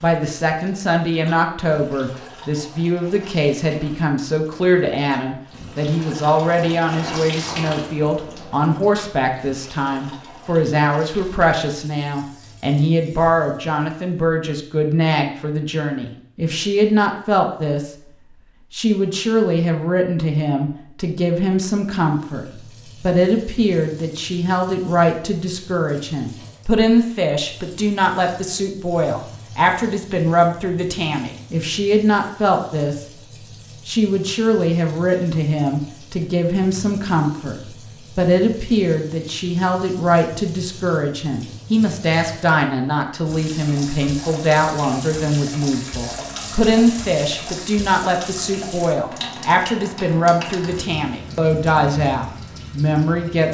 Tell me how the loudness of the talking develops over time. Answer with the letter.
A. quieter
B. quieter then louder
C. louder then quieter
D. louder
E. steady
E.